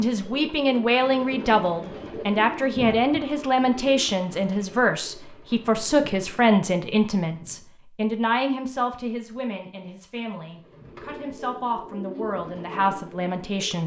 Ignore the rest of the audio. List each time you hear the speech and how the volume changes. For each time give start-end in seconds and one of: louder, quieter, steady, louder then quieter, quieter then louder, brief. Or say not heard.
0.0-13.8 quieter.